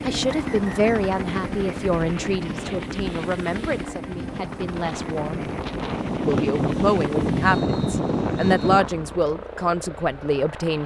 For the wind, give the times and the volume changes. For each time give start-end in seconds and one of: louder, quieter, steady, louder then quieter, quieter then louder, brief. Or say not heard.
0.0-9.0 louder.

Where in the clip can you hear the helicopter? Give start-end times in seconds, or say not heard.
0.0-10.8.